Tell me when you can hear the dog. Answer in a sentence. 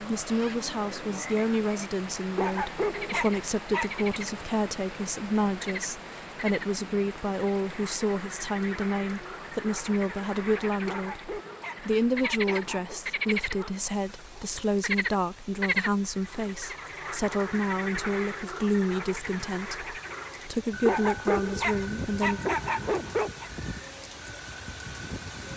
You can hear the dog from 2.4 to 4.0 s, from 10.8 to 13.0 s and from 20.9 to 23.5 s.